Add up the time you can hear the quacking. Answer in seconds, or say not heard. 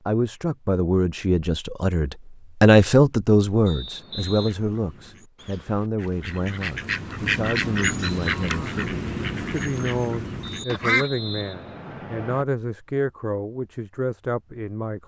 7 s.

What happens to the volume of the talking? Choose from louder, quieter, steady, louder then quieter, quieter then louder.
quieter.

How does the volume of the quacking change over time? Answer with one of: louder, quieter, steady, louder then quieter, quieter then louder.
louder then quieter.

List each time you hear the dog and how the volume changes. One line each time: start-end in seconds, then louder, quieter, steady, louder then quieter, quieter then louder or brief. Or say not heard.
not heard.